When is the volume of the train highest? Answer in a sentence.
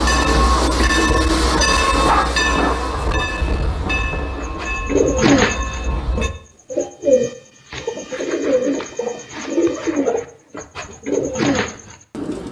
The volume of the train peaks at 2 seconds.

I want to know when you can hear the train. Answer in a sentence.
You can hear the train from 0.0 to 6.3 s.